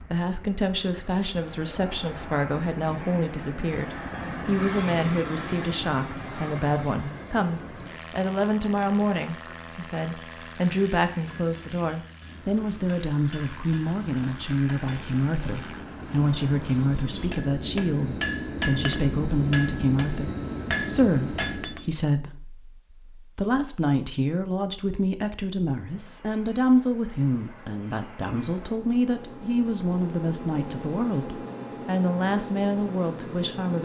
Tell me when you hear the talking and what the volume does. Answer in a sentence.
You can hear the talking from 0.0 to 33.7 s, at a steady volume.